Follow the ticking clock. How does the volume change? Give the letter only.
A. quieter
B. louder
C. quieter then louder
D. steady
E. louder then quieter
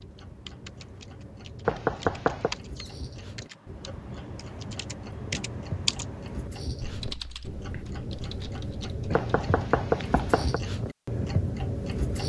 B.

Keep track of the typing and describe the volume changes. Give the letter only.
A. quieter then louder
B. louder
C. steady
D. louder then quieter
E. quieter
D.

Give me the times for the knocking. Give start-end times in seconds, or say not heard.
1.6-2.5, 9.1-10.6.